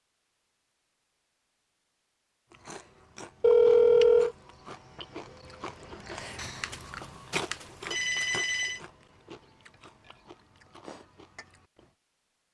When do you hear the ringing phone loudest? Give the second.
4 s.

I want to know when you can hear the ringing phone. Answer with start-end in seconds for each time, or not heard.
3.4-4.3, 6.3-8.8.